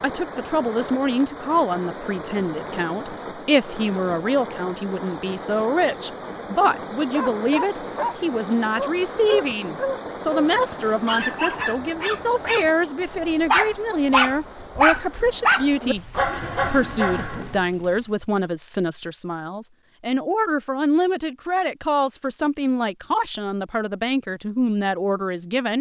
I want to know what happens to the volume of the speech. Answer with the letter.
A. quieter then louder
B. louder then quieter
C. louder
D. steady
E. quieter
D.